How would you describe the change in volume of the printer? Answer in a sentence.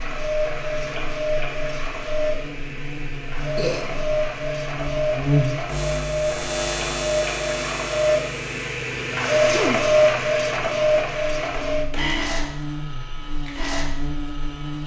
The loudness of the printer goes up, then down.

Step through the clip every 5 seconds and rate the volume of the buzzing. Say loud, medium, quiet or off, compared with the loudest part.
medium, loud, medium.